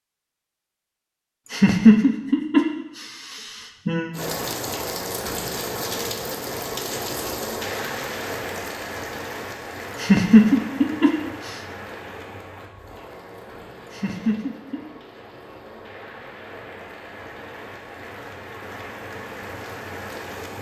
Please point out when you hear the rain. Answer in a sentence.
The rain can be heard from 4.1 to 20.5 s.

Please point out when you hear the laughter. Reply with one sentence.
The laughter can be heard from 1.4 to 4.1 s, from 9.9 to 11.6 s and from 13.8 to 14.8 s.